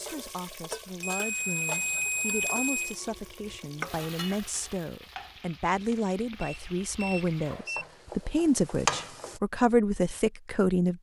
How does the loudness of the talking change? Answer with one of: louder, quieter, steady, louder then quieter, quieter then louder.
louder.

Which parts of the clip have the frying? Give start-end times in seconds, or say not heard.
0.0-9.4.